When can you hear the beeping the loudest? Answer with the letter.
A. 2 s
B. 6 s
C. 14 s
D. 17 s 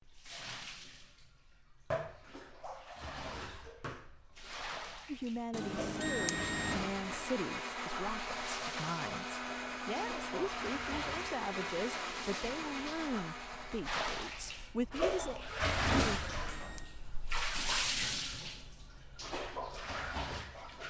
B.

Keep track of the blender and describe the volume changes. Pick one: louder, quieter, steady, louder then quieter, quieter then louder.
steady.